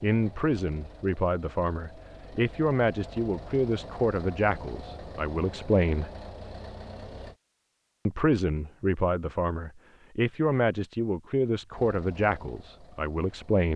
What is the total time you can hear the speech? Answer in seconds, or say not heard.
12 s.